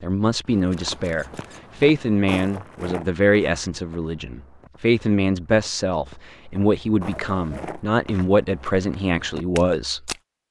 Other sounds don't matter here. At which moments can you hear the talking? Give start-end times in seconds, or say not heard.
0.0-10.1.